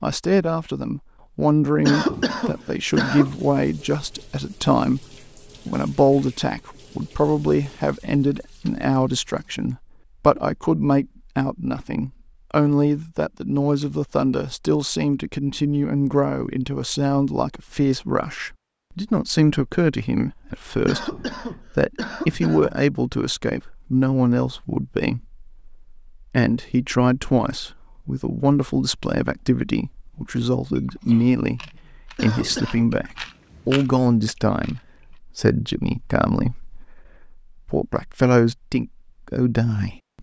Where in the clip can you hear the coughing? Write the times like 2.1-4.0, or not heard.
1.9-3.4, 20.9-22.8, 32.1-32.9.